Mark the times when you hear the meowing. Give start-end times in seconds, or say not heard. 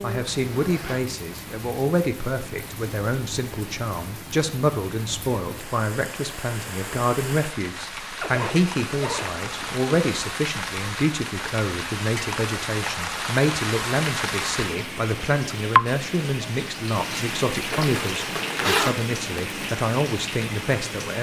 not heard.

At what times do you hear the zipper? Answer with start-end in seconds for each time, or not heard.
0.1-1.0, 8.2-9.8, 17.7-19.0.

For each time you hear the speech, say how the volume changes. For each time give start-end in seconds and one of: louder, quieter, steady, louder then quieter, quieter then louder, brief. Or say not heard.
0.0-21.1 steady.